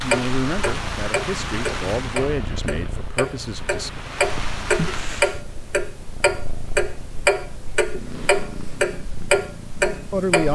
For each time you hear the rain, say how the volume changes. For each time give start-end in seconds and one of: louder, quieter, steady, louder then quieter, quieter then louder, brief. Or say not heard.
0.0-5.5 quieter then louder.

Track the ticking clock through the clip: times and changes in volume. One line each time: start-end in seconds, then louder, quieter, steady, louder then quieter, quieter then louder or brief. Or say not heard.
0.0-10.4 louder.